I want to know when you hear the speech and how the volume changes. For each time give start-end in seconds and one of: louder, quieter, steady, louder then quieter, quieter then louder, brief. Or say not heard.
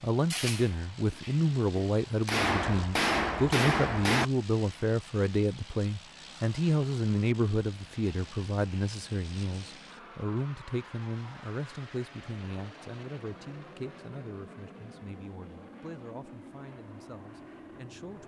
0.0-18.2 quieter.